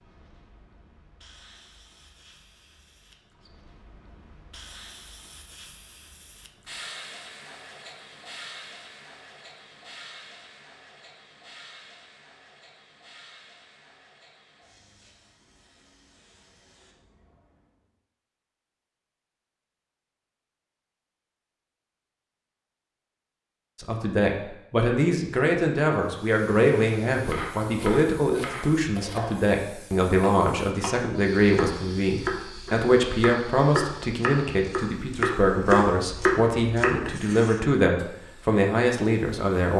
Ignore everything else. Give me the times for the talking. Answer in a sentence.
The talking can be heard from 23.8 to 39.7 s.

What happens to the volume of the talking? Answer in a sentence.
The volume of the talking stays about the same.